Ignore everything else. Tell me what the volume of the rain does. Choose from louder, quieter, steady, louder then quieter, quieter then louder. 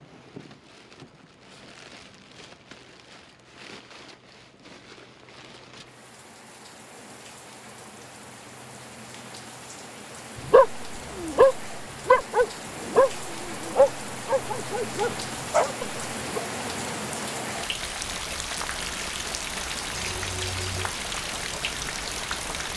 louder.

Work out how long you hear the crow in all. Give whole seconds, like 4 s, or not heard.
not heard.